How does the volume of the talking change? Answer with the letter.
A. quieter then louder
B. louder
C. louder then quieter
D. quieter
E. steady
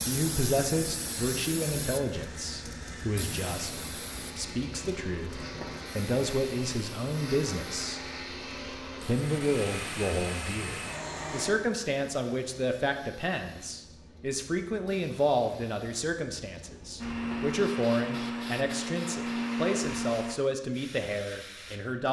E.